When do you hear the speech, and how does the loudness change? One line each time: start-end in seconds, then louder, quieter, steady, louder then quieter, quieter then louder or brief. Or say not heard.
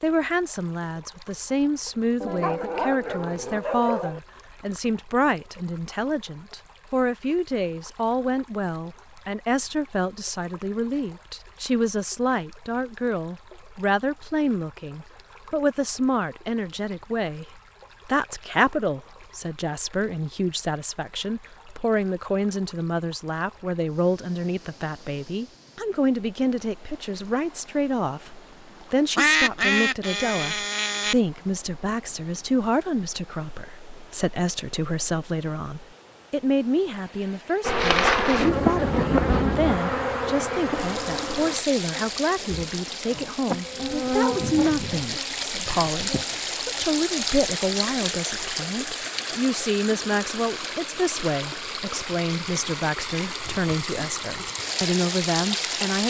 0.0-56.0 steady.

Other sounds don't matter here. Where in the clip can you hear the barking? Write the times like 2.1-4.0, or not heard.
2.2-4.2.